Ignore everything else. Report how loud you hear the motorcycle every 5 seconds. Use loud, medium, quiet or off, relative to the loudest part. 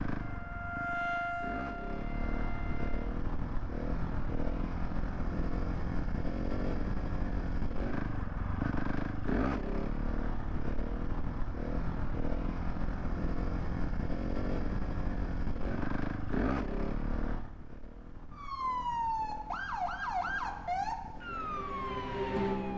loud, loud, loud, loud, quiet.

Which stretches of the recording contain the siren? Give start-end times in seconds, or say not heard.
0.1-3.2, 18.3-22.7.